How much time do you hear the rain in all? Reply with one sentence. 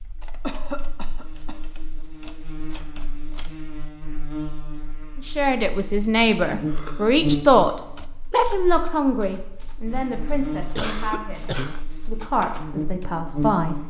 The rain can't be heard in this clip.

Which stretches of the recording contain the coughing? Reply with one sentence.
You can hear the coughing from 0.4 to 1.6 s, from 6.7 to 7.2 s and from 10.8 to 11.8 s.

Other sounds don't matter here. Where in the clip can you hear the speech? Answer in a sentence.
The speech can be heard from 5.2 to 13.8 s.